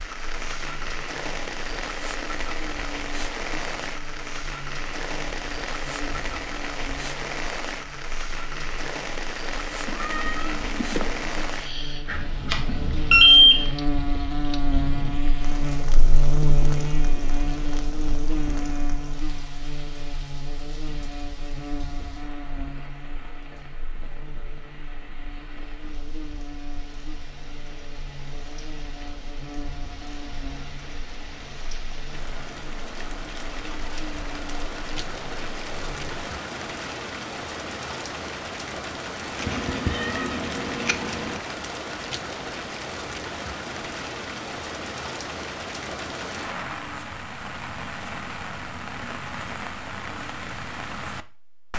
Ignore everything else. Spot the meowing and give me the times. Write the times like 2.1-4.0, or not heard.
9.8-11.6, 39.4-41.4.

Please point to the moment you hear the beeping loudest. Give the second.
13 s.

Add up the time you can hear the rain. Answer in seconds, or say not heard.
52 s.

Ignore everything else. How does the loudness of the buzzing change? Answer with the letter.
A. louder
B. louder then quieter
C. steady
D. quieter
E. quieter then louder
B.